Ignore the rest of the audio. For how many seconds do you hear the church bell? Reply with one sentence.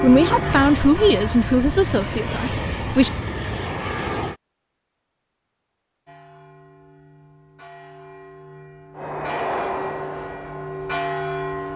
You can hear the church bell for 7 seconds altogether.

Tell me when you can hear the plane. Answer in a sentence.
You can hear the plane from 0.0 to 4.3 s and from 8.9 to 11.7 s.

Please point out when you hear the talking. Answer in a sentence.
You can hear the talking from 0.0 to 3.1 s.